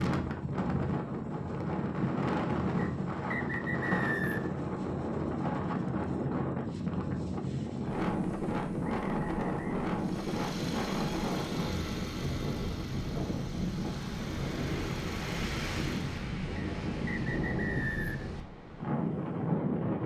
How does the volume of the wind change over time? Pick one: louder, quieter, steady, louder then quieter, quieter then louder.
steady.